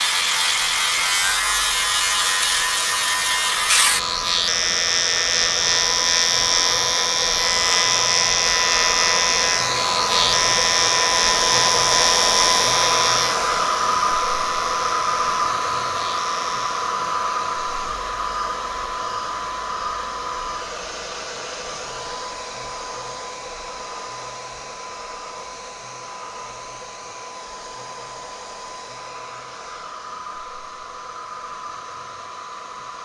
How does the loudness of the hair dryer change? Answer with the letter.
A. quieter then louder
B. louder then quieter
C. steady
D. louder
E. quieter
B.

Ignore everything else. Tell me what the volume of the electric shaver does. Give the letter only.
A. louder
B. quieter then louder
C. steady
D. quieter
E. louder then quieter
D.